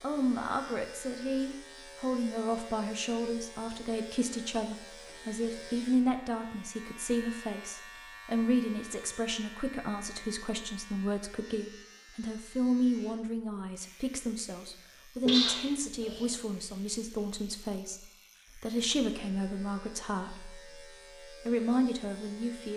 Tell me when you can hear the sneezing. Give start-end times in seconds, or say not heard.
15.2-16.4.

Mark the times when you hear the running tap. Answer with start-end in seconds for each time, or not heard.
not heard.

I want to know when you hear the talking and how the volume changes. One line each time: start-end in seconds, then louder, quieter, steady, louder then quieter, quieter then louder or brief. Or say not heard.
0.0-22.7 steady.